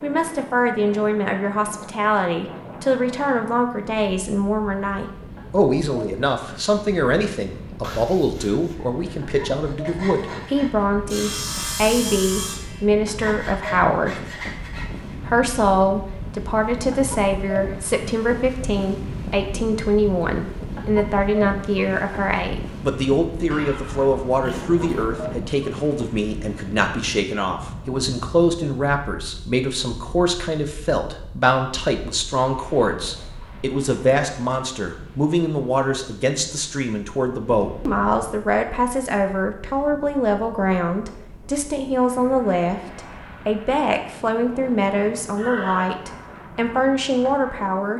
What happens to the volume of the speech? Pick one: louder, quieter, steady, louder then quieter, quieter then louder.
steady.